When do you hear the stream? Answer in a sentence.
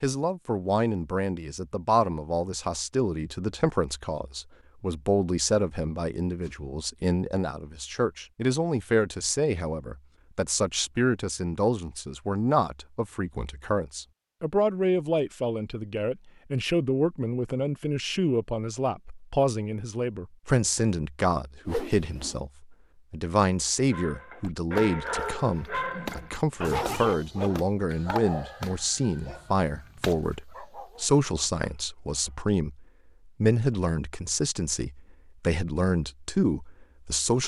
The stream can't be heard in this clip.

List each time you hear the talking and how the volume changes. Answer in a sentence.
You can hear the talking from 0.0 to 37.4 s, at a steady volume.